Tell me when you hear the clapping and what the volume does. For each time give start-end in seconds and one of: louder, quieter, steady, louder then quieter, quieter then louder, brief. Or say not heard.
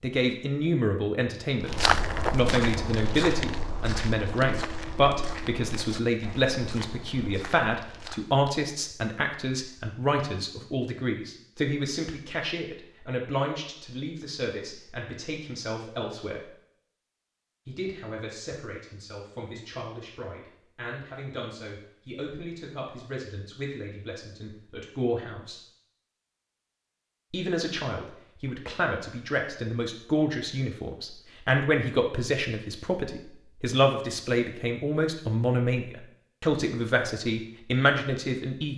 not heard.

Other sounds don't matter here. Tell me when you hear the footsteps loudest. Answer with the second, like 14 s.
2 s.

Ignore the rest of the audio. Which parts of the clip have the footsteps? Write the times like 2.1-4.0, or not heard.
1.6-8.2.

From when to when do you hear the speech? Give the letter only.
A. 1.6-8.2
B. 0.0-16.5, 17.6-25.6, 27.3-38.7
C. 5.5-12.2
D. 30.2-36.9
B.